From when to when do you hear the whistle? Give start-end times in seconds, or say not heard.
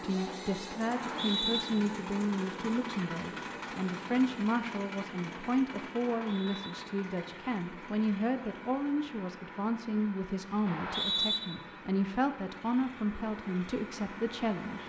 0.9-1.6, 6.0-6.8, 10.7-11.4.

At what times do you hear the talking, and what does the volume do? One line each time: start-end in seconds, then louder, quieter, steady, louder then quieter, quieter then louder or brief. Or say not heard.
0.0-14.8 steady.